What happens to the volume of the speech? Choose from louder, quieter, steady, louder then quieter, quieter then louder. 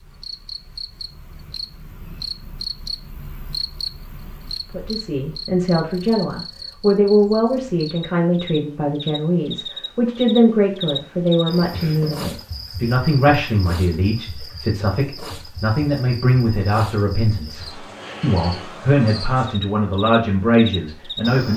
steady.